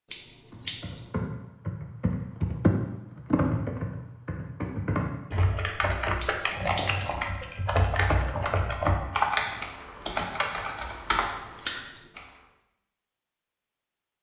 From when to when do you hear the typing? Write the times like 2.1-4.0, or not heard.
0.5-12.2.